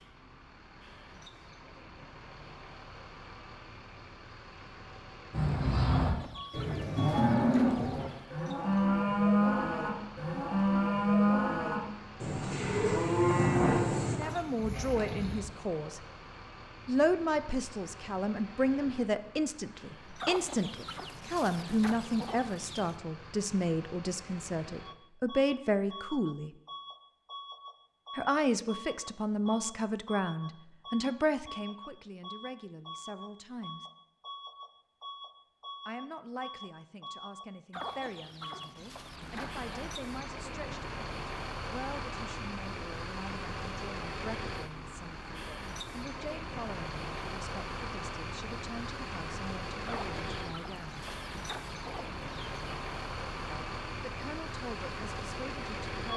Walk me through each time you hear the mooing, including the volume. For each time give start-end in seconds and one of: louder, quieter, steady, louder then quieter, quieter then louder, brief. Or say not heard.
5.3-15.4 steady.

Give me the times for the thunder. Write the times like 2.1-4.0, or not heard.
13.2-13.8.